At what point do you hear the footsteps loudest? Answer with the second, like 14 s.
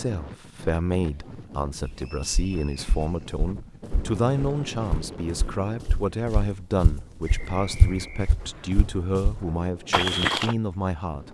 10 s.